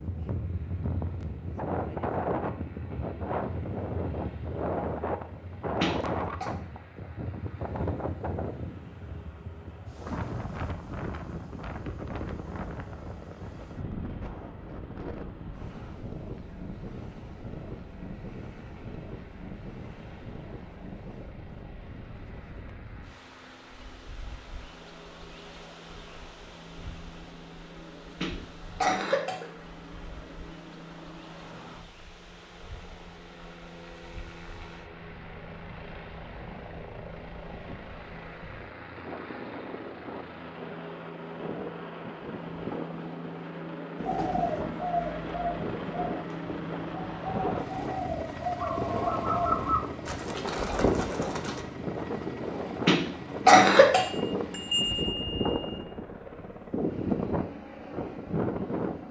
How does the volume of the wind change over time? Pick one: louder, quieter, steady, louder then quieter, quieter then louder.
quieter then louder.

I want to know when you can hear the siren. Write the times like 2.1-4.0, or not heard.
not heard.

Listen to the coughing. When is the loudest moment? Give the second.
54 s.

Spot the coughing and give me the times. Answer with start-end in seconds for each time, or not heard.
5.8-6.5, 28.2-29.5, 52.9-54.0.